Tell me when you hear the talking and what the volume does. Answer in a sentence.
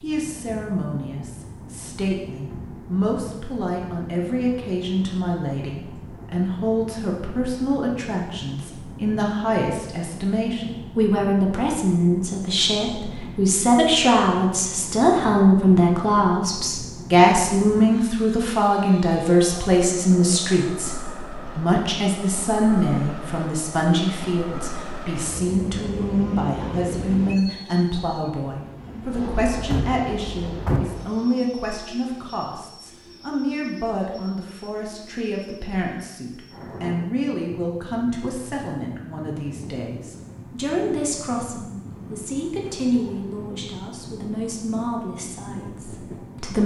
The talking can be heard from 0.0 to 46.6 s, getting louder then quieter.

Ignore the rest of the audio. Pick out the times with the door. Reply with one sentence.
The door can be heard from 29.6 to 30.9 s.